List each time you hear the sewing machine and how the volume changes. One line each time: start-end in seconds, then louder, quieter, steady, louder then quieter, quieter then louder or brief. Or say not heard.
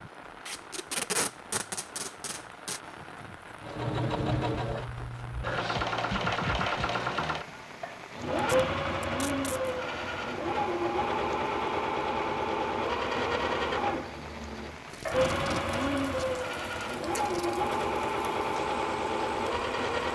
3.6-20.1 steady.